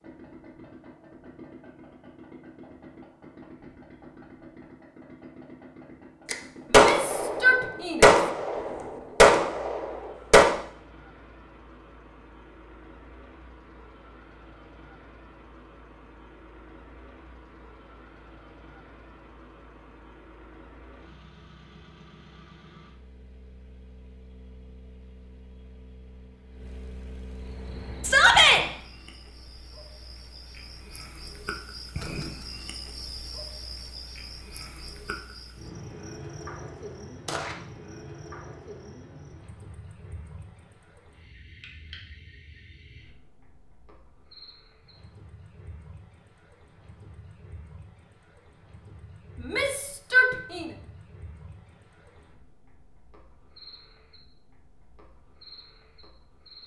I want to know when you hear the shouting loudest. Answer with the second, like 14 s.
28 s.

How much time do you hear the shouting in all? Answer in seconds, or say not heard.
3 s.